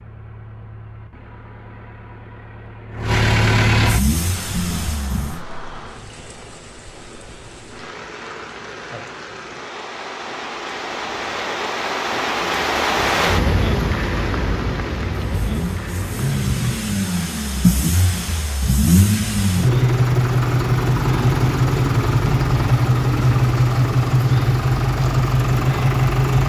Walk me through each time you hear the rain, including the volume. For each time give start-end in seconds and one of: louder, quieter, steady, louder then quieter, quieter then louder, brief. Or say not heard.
3.9-26.4 louder then quieter.